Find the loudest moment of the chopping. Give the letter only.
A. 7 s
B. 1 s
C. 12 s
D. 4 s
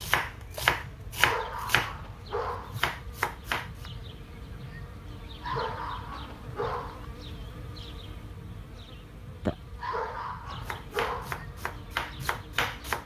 B.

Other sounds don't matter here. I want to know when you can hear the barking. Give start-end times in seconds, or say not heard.
1.1-2.8, 5.4-7.0, 9.8-11.4.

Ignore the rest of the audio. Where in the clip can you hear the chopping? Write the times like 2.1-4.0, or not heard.
0.0-3.9, 10.7-13.0.